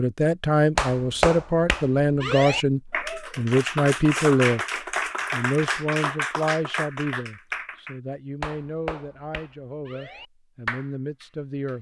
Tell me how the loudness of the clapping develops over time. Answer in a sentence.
The loudness of the clapping goes down.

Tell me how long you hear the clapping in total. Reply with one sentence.
You can hear the clapping for 11 seconds altogether.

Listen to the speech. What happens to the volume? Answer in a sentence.
The volume of the speech goes down.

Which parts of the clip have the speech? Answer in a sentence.
You can hear the speech from 0.0 to 4.6 s and from 5.3 to 11.7 s.